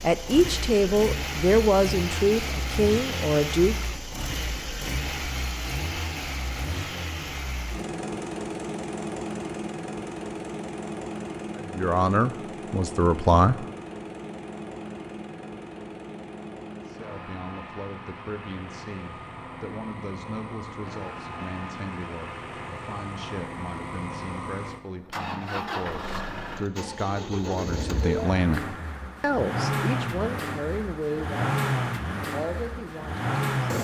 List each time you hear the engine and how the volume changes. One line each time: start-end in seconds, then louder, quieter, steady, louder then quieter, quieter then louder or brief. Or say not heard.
0.0-33.8 quieter then louder.